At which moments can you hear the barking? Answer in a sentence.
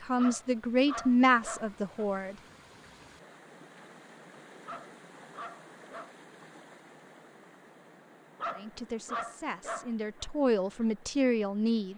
You can hear the barking from 0.1 to 2.0 s, from 4.7 to 6.1 s and from 8.3 to 10.2 s.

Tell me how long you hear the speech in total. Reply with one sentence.
The speech can be heard for 6 seconds in total.